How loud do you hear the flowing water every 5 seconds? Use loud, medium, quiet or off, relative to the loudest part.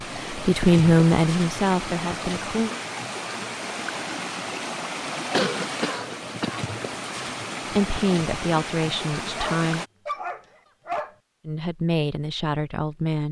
loud, loud, off.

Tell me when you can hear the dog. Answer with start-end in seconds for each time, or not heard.
9.3-11.2.